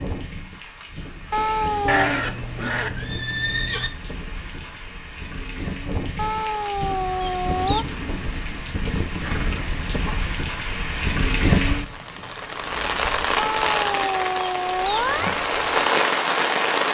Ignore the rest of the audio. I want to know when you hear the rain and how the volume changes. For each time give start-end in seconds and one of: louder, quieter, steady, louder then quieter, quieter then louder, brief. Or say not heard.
0.0-16.8 louder.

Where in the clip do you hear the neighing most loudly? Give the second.
2 s.